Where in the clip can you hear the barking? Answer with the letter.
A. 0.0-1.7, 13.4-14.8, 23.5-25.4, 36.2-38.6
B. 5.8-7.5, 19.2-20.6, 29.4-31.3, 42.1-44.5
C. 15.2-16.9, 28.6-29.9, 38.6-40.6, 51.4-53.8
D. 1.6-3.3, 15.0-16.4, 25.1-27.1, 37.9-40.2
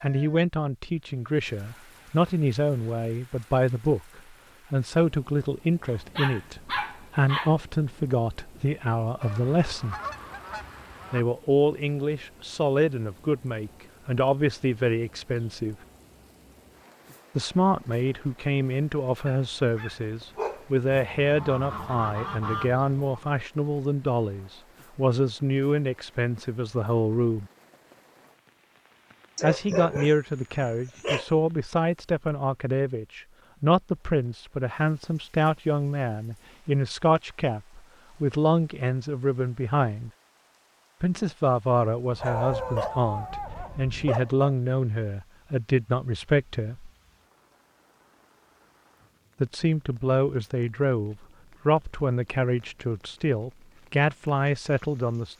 B.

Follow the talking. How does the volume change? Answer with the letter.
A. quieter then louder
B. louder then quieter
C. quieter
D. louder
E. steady
E.